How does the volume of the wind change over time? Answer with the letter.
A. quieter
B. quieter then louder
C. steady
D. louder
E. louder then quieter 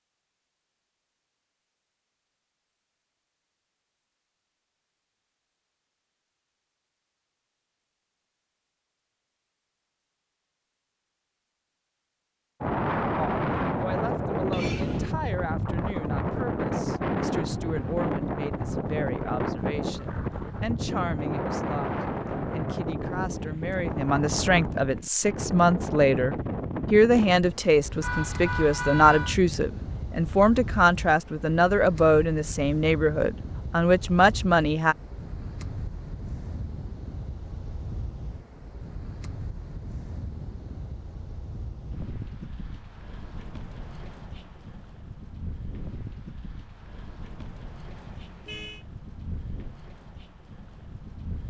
A.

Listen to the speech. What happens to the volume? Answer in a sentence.
The volume of the speech goes up.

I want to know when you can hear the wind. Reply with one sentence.
The wind can be heard from 12.6 to 51.4 s.